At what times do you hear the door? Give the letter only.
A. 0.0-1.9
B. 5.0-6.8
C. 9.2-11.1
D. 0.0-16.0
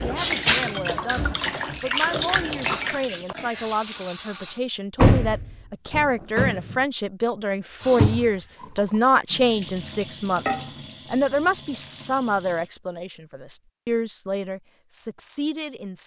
B.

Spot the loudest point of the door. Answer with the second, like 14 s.
5 s.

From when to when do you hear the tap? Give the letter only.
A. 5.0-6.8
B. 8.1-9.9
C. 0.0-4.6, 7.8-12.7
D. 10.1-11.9
C.